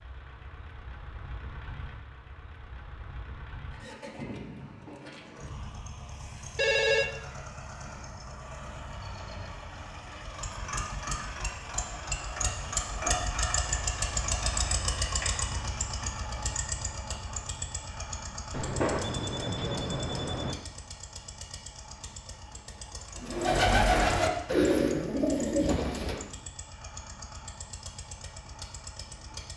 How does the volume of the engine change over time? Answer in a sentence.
The loudness of the engine goes up, then down.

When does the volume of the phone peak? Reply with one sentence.
The volume of the phone peaks at 7 seconds.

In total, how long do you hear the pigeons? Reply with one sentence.
You can hear the pigeons for 3 seconds altogether.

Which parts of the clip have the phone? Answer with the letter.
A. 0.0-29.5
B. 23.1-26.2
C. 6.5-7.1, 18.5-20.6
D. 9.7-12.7
C.